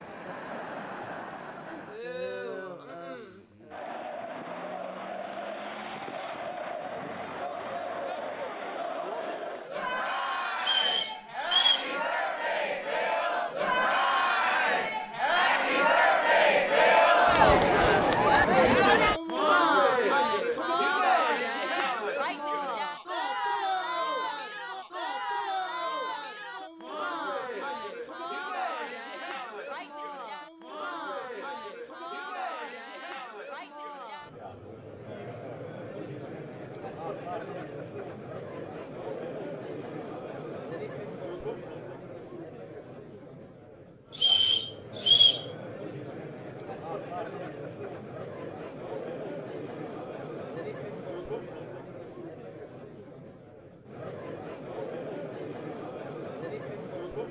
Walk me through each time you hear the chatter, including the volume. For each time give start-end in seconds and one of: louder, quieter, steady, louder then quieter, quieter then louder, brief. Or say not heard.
0.0-57.2 louder then quieter.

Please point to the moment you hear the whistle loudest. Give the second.
45 s.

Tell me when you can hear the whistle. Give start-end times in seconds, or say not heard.
10.6-11.9, 44.1-45.5.